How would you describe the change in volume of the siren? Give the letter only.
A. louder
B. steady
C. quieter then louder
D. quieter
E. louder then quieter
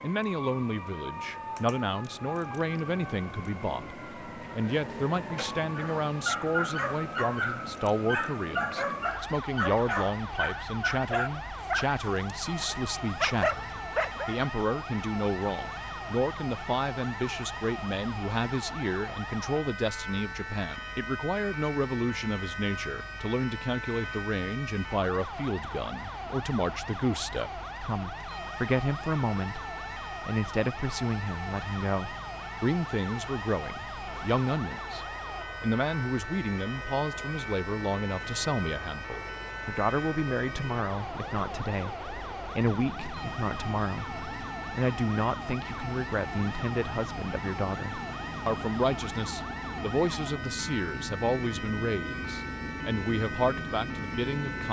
B.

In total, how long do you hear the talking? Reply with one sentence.
You can hear the talking for 54 seconds altogether.